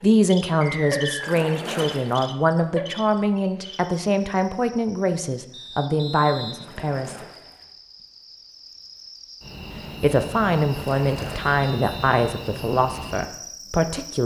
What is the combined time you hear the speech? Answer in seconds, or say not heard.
11 s.